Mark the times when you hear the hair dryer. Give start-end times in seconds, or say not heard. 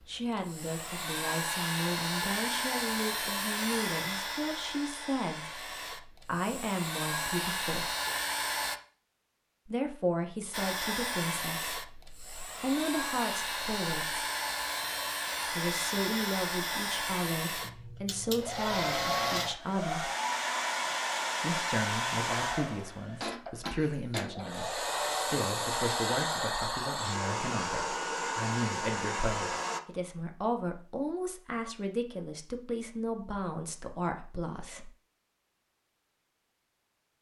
0.0-8.8, 10.5-29.8.